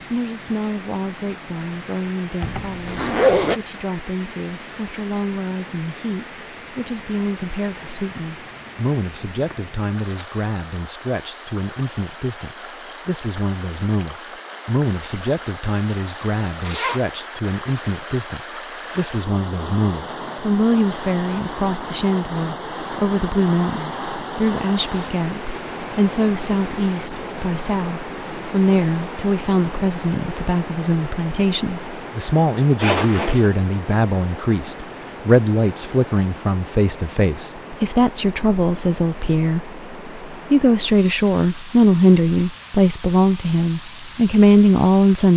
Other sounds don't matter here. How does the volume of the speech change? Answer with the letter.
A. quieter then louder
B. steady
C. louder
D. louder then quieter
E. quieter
C.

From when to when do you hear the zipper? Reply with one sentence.
The zipper can be heard from 2.4 to 3.6 s, from 16.6 to 17.1 s and from 32.8 to 33.5 s.